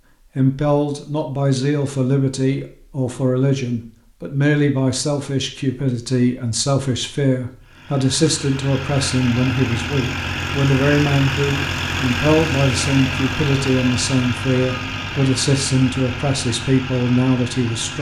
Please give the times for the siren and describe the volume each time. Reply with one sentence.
You can't hear the siren here.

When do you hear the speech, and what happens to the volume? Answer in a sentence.
The speech can be heard from 0.3 to 17.9 s, at a steady volume.